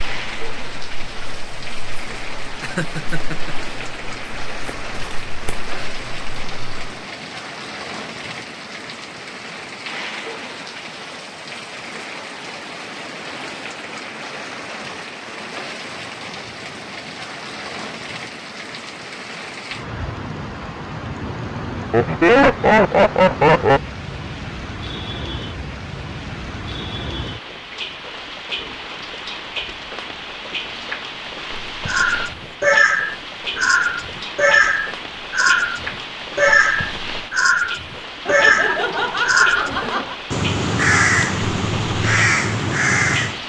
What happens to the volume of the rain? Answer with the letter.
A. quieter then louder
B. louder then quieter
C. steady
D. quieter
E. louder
C.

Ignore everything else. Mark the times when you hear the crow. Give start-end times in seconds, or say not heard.
0.0-7.0, 31.9-43.4.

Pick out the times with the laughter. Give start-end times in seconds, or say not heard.
2.6-3.5, 21.9-23.8, 38.2-40.1.